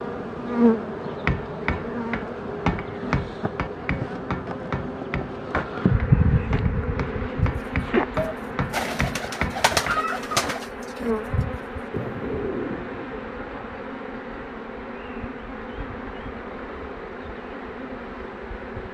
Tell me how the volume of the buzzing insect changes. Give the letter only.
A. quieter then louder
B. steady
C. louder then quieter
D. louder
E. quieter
E.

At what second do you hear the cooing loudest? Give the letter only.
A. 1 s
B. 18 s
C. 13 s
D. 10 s
D.